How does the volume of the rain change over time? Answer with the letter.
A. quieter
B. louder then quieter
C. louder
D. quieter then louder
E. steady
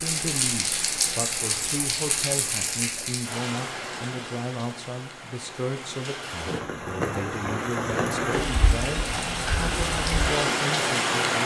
D.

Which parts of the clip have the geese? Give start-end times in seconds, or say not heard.
not heard.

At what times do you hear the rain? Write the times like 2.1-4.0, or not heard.
0.0-11.4.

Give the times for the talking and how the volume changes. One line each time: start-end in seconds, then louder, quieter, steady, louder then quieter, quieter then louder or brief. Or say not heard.
0.0-11.4 steady.